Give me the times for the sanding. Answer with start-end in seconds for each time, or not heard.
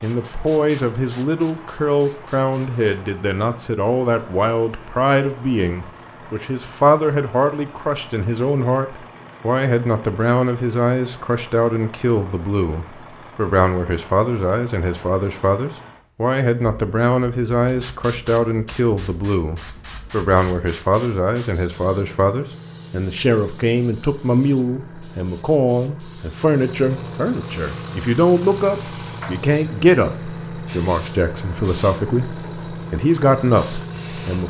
not heard.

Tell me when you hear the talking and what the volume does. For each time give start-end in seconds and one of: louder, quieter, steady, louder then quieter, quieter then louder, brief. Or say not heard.
0.0-34.4 steady.